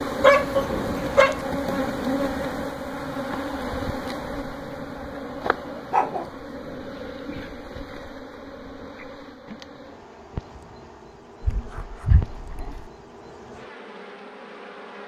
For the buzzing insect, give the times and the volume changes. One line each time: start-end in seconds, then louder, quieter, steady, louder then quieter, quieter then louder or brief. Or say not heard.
0.0-15.0 quieter.